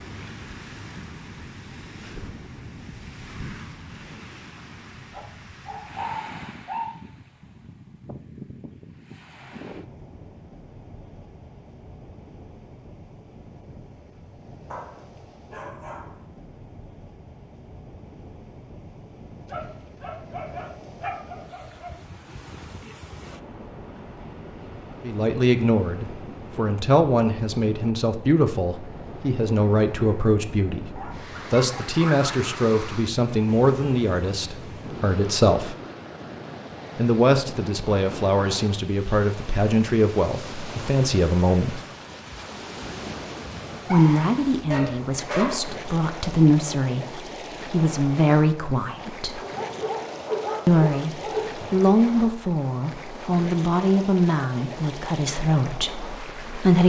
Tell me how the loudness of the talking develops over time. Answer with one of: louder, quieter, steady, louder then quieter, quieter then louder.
steady.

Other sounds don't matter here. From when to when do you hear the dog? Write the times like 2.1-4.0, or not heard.
5.1-7.0, 14.7-16.1, 19.4-21.9, 30.9-32.5, 43.9-45.5, 49.4-51.7.